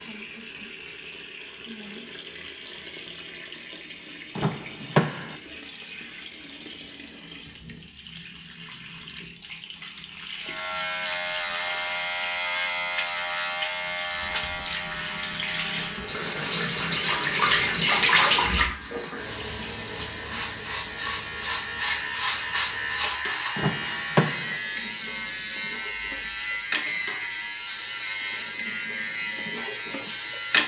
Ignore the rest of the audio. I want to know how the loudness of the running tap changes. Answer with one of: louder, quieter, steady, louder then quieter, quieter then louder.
louder then quieter.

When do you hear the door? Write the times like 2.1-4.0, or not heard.
4.3-5.3, 23.6-24.6.